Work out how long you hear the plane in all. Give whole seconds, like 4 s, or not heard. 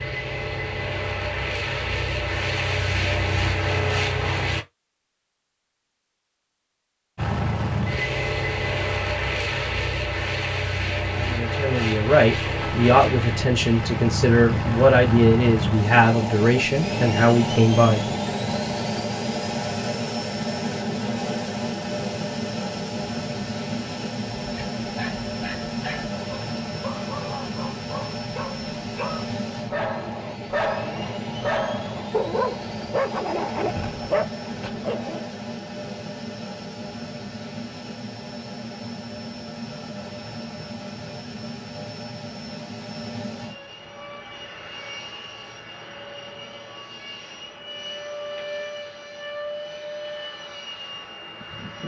49 s.